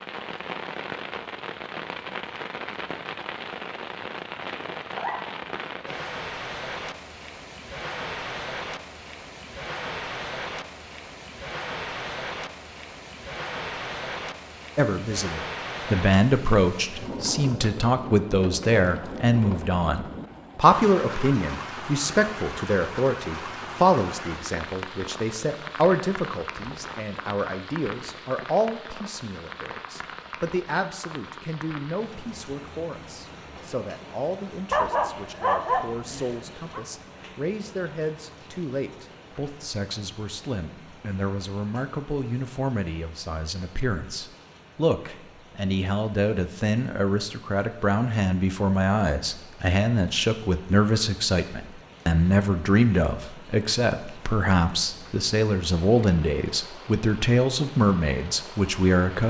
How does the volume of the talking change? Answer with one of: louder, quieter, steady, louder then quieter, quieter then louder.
quieter then louder.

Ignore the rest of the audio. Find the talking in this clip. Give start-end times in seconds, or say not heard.
14.8-59.2.